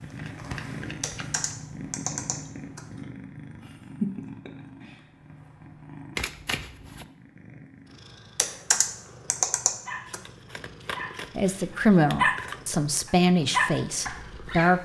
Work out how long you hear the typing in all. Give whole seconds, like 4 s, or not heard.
4 s.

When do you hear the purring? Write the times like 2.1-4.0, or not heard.
0.0-14.8.